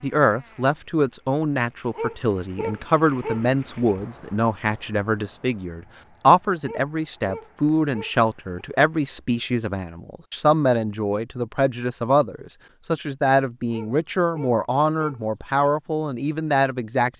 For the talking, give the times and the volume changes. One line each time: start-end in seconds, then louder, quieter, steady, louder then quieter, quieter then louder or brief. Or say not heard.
0.0-17.1 steady.